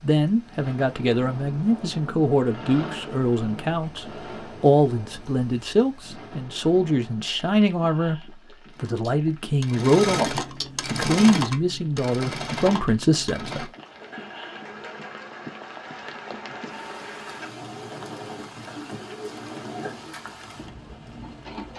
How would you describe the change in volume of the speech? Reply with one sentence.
The volume of the speech stays about the same.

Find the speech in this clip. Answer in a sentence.
The speech can be heard from 0.0 to 13.7 s.